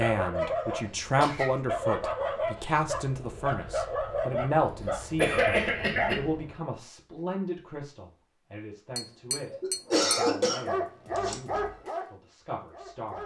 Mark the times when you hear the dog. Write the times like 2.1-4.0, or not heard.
0.0-6.6, 10.0-13.2.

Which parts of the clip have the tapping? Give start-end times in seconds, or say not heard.
8.9-10.2.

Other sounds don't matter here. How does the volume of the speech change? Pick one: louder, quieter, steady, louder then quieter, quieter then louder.
quieter.